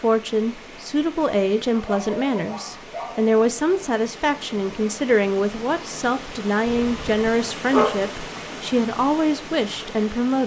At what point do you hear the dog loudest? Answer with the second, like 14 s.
8 s.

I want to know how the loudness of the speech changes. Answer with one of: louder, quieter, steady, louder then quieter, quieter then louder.
steady.